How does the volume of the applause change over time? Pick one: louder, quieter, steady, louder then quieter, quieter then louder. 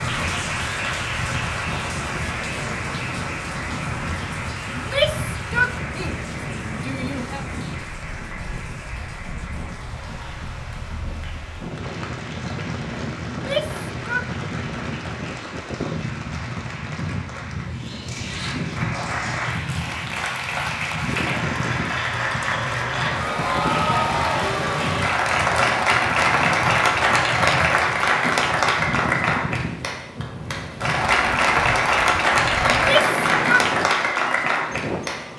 quieter then louder.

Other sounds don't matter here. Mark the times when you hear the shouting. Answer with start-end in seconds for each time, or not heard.
4.8-7.5, 13.2-14.3, 32.6-33.6.